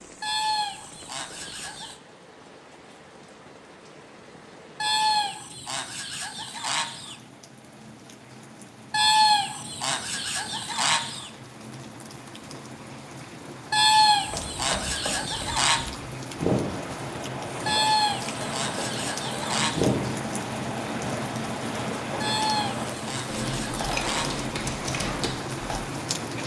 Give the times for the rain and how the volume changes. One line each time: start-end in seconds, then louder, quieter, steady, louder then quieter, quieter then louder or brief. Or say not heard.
0.0-26.4 louder.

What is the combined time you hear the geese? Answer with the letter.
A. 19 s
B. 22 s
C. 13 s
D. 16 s
C.